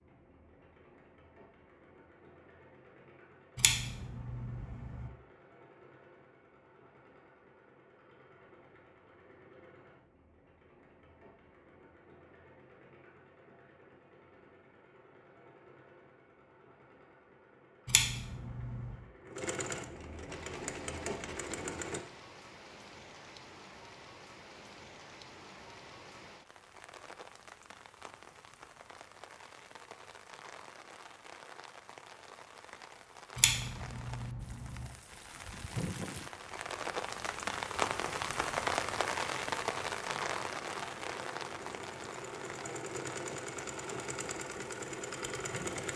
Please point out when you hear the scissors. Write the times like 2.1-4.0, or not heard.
3.5-5.1, 17.9-18.9, 33.4-34.9.